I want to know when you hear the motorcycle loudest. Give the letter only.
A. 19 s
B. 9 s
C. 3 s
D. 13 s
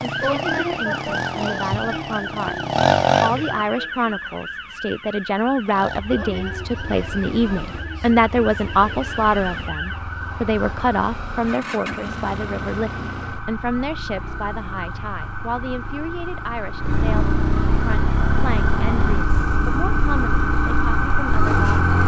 C.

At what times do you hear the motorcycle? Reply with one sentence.
You can hear the motorcycle from 0.0 to 3.7 s and from 5.7 to 22.0 s.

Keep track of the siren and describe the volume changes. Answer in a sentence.
The volume of the siren goes down, then up.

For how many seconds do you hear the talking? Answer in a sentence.
The talking can be heard for 21 seconds in total.